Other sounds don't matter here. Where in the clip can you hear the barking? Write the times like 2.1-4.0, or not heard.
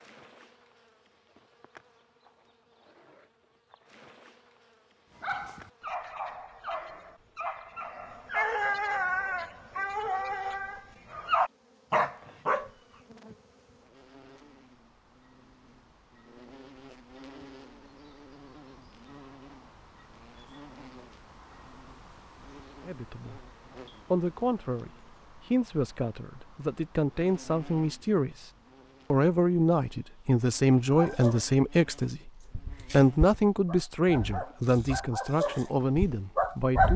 5.2-12.7, 30.9-36.9.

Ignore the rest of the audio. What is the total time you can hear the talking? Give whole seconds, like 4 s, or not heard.
13 s.